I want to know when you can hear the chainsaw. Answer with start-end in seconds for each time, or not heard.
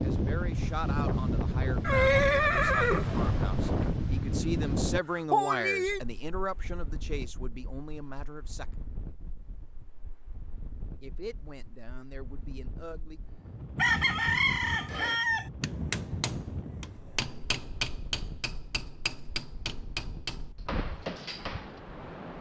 not heard.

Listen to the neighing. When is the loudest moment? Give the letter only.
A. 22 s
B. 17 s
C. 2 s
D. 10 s
C.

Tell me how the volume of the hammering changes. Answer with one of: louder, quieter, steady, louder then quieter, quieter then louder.
steady.